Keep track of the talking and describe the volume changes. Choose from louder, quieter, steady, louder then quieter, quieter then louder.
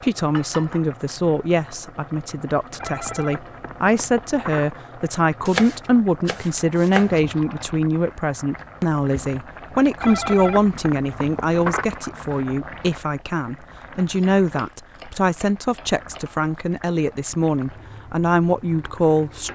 steady.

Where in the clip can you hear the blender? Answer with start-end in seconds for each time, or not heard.
not heard.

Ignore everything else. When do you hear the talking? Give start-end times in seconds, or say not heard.
0.0-19.5.